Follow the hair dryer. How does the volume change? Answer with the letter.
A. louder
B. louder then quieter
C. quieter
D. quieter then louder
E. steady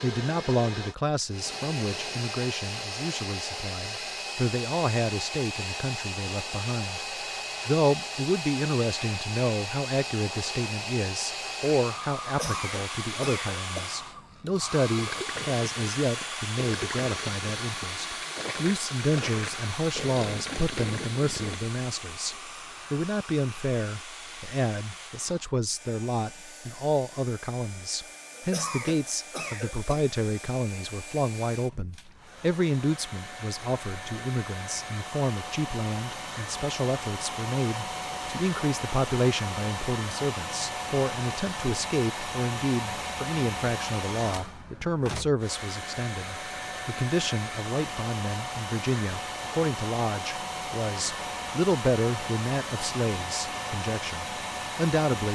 D.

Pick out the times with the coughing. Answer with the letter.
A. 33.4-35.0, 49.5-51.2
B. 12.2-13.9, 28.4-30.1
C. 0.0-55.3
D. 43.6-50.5
B.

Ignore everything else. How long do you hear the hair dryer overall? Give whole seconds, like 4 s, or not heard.
55 s.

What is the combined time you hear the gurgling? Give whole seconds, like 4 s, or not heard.
7 s.